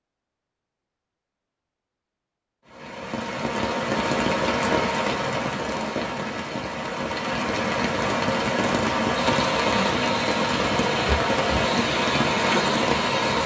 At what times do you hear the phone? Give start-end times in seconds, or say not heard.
not heard.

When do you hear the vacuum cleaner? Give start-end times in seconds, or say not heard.
9.2-13.4.